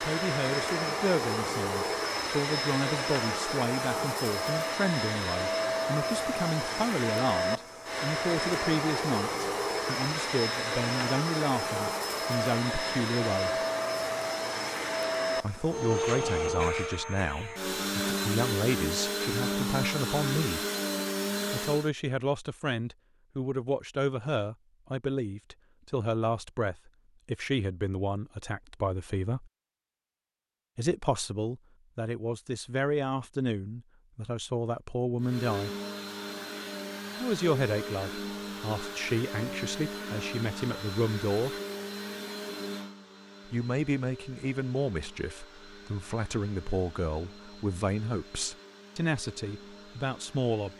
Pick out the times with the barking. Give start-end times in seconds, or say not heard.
not heard.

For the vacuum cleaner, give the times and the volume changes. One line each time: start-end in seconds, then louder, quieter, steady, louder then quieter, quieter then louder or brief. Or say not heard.
0.0-21.9 steady
35.2-50.7 quieter.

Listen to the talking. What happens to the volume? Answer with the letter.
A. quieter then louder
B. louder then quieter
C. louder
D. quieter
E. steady
E.